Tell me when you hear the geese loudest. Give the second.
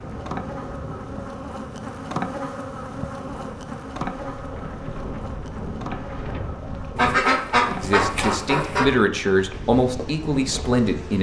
7 s.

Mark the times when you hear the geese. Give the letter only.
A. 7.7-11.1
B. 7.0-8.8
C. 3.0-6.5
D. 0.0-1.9
B.